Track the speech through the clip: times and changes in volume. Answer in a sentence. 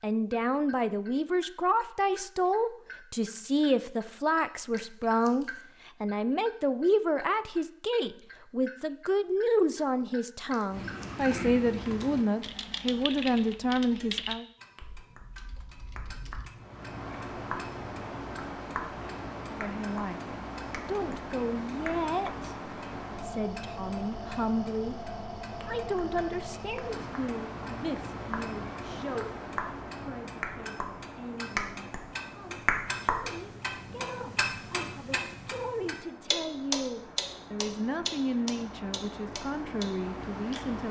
You can hear the speech from 0.0 to 14.4 s, at a steady volume; briefly from 19.5 to 20.2 s; from 20.9 to 24.9 s, getting quieter then louder; and from 25.6 to 40.8 s, getting quieter then louder.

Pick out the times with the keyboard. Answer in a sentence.
You can hear the keyboard from 10.7 to 16.5 s.